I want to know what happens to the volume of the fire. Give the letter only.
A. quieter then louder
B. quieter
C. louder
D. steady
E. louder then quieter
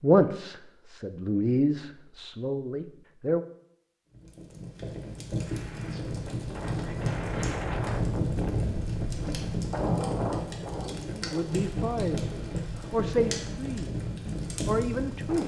D.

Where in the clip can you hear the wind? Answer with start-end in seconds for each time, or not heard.
5.5-15.4.